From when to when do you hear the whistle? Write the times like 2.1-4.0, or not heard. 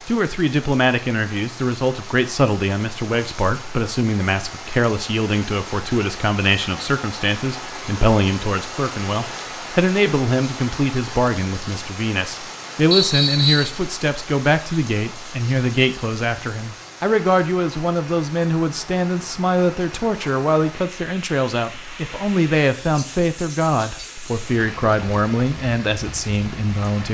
12.9-13.8.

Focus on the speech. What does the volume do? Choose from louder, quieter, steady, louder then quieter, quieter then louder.
steady.